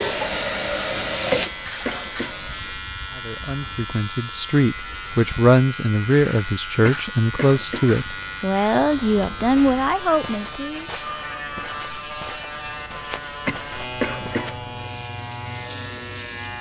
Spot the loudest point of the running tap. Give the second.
1 s.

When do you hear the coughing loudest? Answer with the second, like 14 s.
14 s.